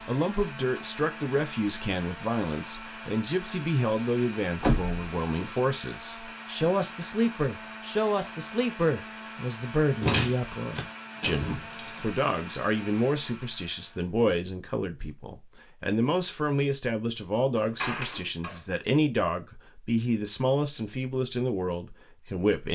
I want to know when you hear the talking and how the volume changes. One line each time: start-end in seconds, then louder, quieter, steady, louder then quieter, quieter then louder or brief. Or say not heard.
0.1-22.7 steady.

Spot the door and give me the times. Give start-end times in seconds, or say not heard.
4.6-5.1, 10.0-12.0, 17.8-18.6.